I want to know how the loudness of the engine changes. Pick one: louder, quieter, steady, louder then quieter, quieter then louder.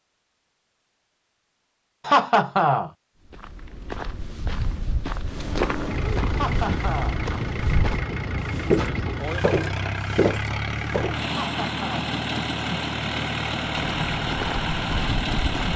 steady.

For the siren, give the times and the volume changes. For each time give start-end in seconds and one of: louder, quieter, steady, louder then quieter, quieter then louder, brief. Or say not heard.
not heard.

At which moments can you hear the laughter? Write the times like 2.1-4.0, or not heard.
2.0-2.9, 6.3-7.2, 11.3-12.1.